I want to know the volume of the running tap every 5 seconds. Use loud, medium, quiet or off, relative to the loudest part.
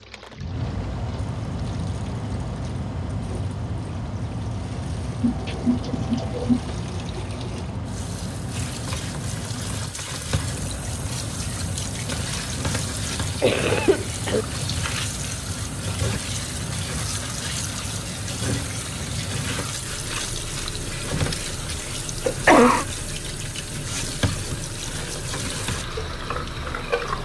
quiet, medium, loud, loud, loud, loud.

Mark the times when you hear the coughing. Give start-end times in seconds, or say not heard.
5.2-6.7, 13.1-14.4, 22.2-22.9.